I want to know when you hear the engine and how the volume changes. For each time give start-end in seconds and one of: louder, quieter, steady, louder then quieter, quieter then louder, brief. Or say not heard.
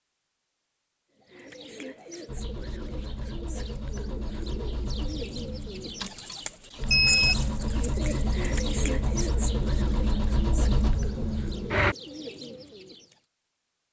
2.2-11.9 louder.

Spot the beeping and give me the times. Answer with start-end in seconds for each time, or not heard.
6.9-7.5.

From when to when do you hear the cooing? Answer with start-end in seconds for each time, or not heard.
1.2-13.2.